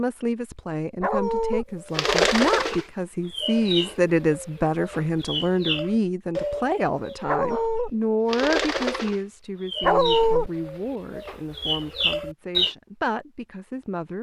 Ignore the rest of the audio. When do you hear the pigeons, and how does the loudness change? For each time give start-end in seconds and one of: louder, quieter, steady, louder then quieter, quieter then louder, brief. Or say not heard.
1.9-7.7 quieter then louder
8.2-12.8 quieter then louder.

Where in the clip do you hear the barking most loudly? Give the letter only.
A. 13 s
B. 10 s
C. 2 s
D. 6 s
B.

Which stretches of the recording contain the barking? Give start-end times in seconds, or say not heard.
1.0-1.6, 7.2-7.9, 9.8-10.5.